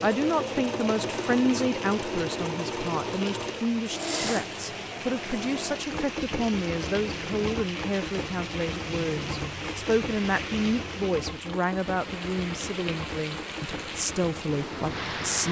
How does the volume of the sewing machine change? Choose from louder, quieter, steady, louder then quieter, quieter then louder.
quieter.